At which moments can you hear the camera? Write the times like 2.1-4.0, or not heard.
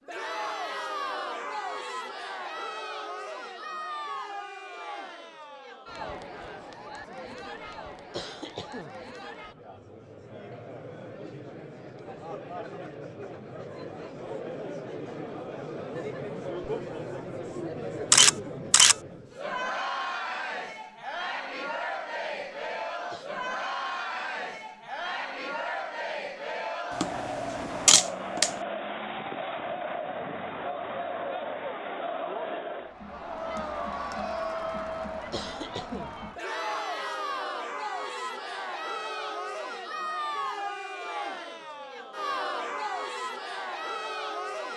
18.1-18.9, 27.0-28.5.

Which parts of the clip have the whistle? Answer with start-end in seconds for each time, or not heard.
not heard.